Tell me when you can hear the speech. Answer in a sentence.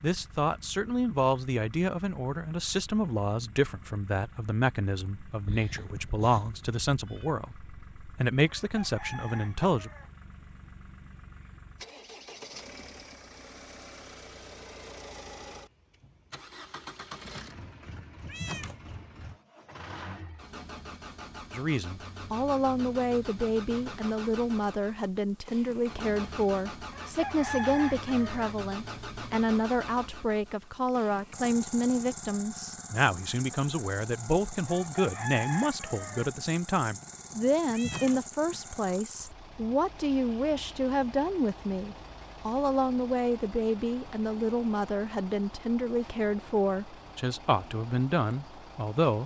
You can hear the speech from 0.0 to 9.9 s and from 21.5 to 49.2 s.